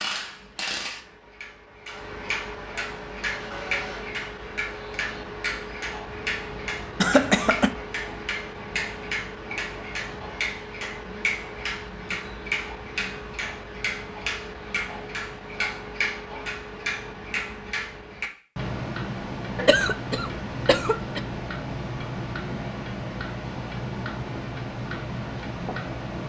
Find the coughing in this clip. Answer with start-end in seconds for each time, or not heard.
7.0-7.7, 19.6-21.2.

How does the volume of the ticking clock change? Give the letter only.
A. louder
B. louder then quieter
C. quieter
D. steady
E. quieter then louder
D.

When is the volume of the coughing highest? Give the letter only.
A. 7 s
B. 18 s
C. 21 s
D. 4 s
A.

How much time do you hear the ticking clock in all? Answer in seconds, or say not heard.
26 s.